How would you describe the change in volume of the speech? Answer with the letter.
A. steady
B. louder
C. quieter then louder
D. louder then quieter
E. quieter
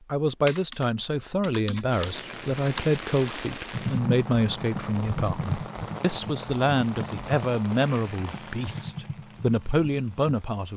A.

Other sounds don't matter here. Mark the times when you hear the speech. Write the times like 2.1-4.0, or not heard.
0.1-10.7.